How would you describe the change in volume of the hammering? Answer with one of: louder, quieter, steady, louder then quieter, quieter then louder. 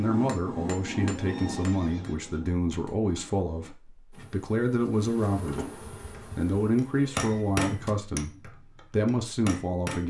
quieter then louder.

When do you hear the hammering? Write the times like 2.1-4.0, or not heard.
0.0-3.7, 6.1-10.0.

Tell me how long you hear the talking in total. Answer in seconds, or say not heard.
10 s.